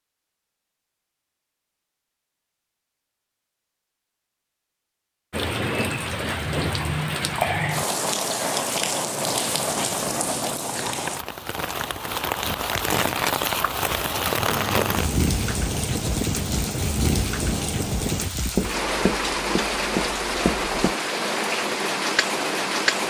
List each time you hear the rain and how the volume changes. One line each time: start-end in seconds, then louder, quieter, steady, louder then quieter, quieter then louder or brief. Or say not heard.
5.3-23.0 steady.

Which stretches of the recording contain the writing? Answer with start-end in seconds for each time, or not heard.
14.3-20.9.